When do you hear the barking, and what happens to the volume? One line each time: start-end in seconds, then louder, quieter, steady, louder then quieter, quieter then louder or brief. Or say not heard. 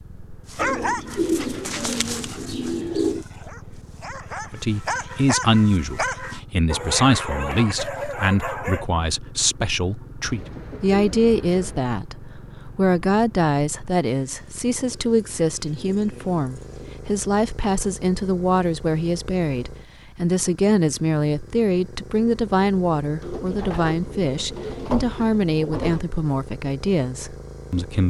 0.5-8.8 quieter then louder.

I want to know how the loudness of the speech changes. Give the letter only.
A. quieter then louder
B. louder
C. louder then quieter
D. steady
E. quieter
D.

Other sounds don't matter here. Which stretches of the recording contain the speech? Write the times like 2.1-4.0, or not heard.
4.5-28.0.